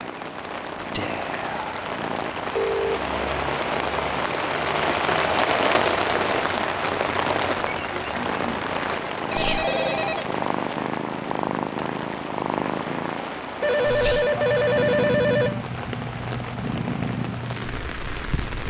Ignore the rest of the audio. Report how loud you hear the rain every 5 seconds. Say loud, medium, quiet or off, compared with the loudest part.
loud, loud, medium, medium.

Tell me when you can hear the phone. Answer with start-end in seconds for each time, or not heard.
2.5-3.0, 9.3-10.2, 13.6-15.7.